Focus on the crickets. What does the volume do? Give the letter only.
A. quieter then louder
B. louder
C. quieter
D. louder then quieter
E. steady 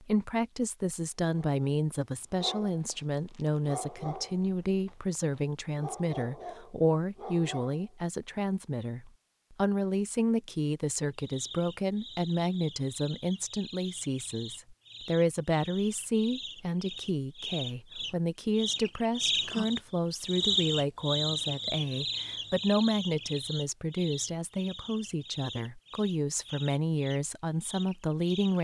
D.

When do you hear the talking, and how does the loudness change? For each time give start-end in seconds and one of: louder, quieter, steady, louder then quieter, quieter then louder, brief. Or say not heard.
0.0-28.6 steady.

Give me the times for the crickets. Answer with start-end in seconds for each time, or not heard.
11.1-28.6.